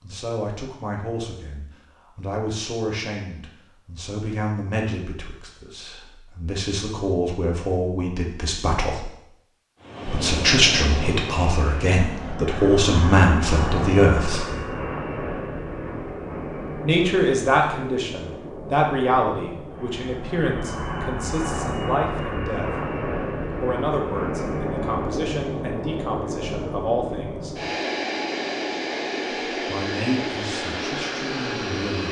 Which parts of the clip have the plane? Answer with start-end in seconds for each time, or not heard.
9.8-32.0.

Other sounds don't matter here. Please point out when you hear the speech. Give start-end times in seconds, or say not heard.
0.0-9.1, 10.1-14.4, 16.8-22.6, 23.6-27.6, 29.6-32.0.